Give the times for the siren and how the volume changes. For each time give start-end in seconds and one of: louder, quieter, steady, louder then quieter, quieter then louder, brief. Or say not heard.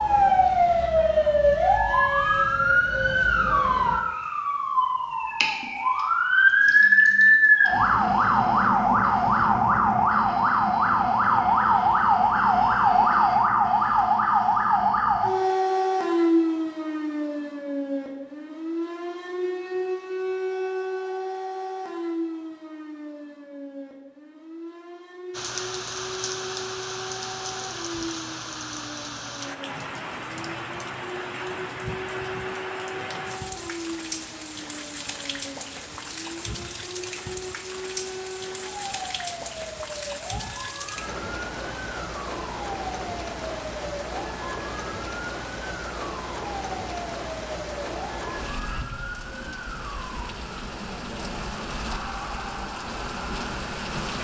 0.0-54.2 quieter.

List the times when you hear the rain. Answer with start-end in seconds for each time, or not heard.
25.3-54.2.